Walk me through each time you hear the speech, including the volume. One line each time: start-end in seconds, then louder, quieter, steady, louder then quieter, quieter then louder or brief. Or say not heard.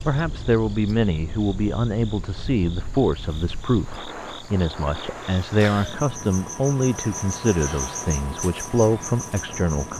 0.0-9.9 steady.